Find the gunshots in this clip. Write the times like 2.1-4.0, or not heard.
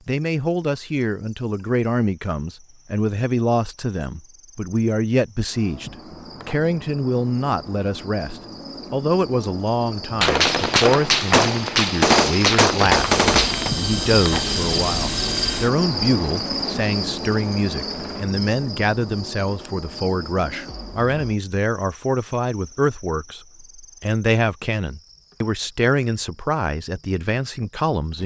10.2-13.7.